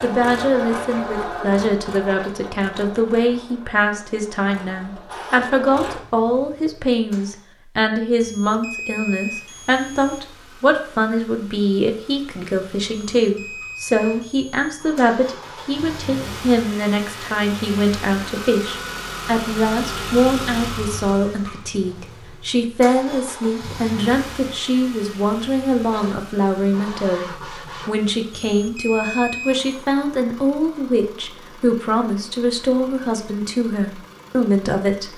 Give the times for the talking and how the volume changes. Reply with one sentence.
You can hear the talking from 0.0 to 27.2 s, at a steady volume; and from 27.9 to 35.1 s, at a steady volume.